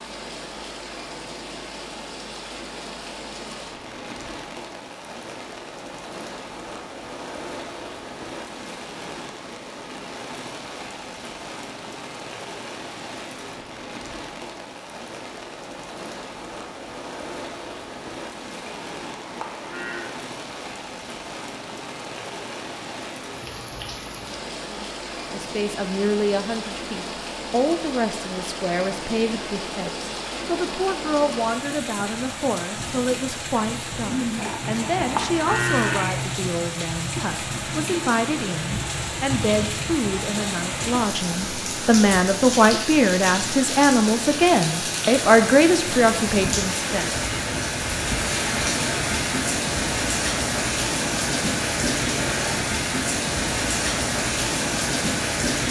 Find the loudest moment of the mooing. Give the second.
36 s.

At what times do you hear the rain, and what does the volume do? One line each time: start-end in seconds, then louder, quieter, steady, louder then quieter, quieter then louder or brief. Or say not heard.
0.0-55.6 louder.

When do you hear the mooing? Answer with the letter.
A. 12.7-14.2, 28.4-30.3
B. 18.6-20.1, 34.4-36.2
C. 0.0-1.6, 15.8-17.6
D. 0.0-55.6
B.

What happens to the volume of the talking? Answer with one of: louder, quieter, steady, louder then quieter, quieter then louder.
louder.